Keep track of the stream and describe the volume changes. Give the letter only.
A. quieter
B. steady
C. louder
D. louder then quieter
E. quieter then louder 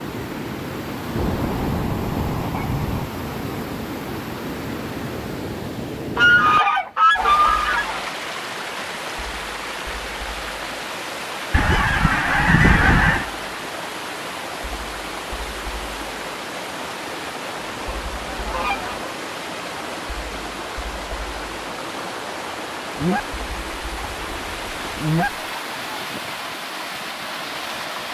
B.